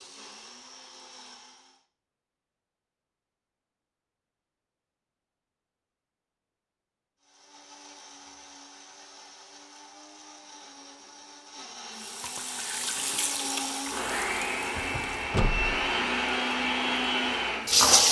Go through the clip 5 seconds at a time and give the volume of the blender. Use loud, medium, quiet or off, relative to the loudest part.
quiet, quiet, medium, loud.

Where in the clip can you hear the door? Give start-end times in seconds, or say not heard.
14.8-15.8.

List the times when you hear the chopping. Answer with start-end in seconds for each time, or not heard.
not heard.